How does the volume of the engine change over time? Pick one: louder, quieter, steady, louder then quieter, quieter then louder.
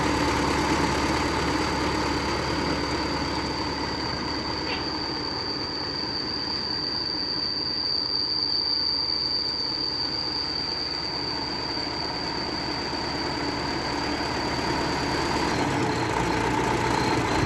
quieter then louder.